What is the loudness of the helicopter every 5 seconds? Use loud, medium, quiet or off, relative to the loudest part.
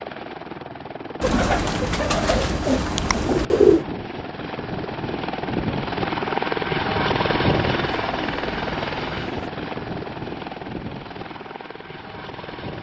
medium, loud, medium.